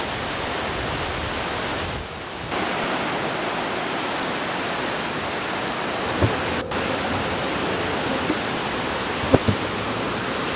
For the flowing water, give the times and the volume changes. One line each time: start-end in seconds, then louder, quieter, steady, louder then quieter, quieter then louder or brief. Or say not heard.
0.0-10.5 steady.